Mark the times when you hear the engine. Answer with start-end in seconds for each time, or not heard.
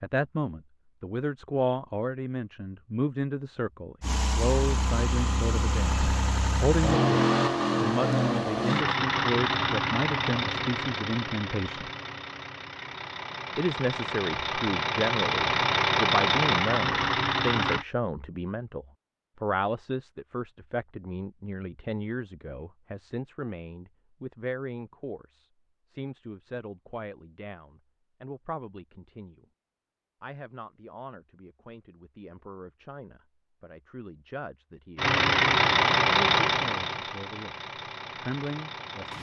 4.0-17.9, 35.0-39.1.